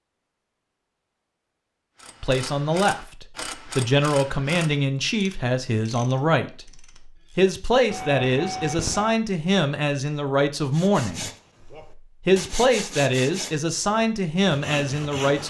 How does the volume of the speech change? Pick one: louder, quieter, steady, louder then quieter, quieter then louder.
steady.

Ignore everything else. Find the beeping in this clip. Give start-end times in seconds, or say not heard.
7.8-9.2.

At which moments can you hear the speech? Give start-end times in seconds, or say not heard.
2.2-6.7, 7.3-11.3, 12.2-15.4.